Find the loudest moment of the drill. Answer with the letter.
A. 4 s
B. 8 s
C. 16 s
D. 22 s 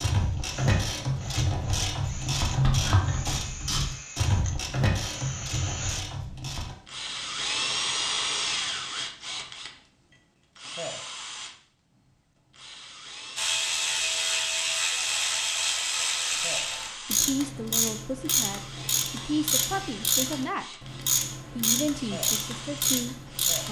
B.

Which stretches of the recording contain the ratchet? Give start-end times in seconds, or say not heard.
0.0-6.8, 13.3-23.6.